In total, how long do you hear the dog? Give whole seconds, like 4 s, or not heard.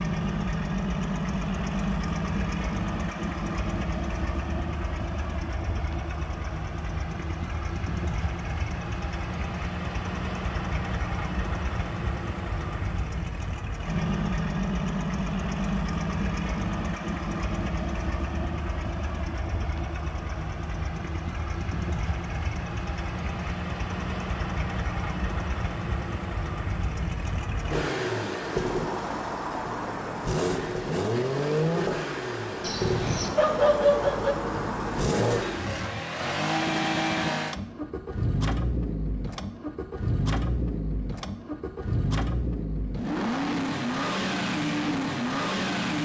2 s.